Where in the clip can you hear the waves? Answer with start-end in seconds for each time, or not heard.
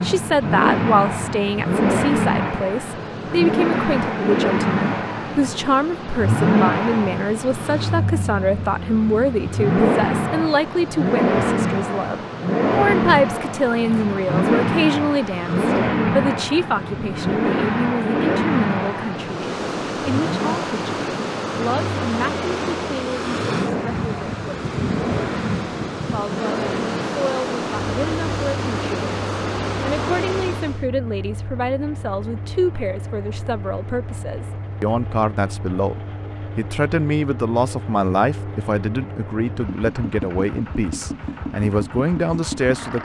0.2-30.9.